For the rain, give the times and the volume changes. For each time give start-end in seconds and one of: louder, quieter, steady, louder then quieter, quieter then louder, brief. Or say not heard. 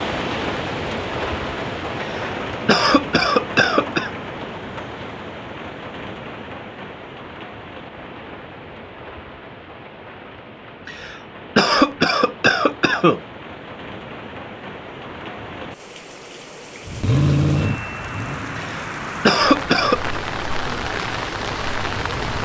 0.0-22.4 quieter then louder.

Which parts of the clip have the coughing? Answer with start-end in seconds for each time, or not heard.
2.0-4.1, 10.8-13.2, 18.6-20.1.